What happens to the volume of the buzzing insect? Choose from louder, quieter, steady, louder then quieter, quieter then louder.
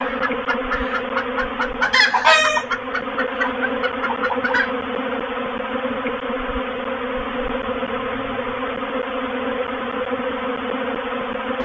steady.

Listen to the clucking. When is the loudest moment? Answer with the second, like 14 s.
2 s.